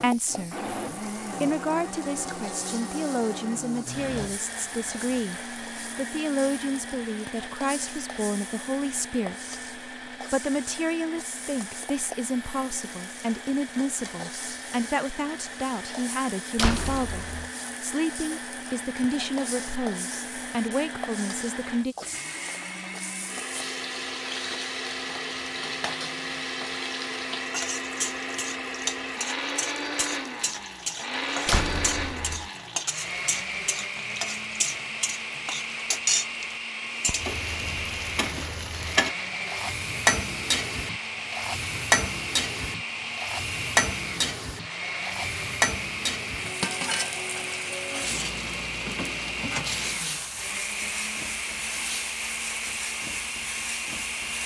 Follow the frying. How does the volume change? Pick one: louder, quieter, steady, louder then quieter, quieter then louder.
louder.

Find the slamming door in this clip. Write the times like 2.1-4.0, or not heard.
16.6-17.5, 31.4-32.5.